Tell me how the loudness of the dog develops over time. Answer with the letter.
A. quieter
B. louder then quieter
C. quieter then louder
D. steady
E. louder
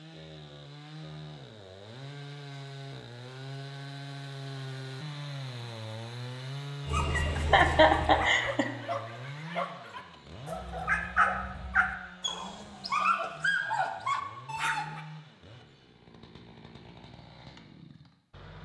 E.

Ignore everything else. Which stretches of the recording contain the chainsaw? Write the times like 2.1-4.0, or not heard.
0.0-18.6.